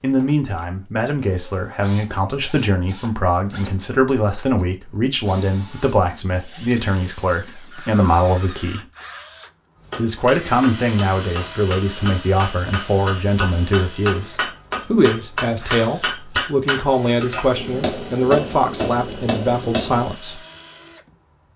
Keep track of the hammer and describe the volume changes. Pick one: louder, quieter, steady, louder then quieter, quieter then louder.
louder.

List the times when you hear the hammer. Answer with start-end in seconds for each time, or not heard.
9.8-20.1.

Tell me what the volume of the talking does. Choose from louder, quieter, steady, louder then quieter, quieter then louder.
steady.